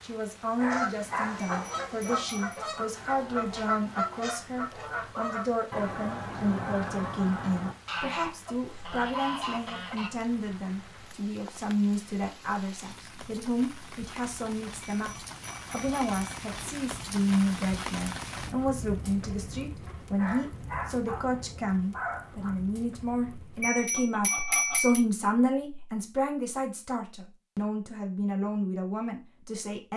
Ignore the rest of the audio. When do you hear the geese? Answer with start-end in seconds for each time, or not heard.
0.6-10.1.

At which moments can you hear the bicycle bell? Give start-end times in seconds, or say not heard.
1.4-2.6, 14.8-16.7, 23.6-25.0.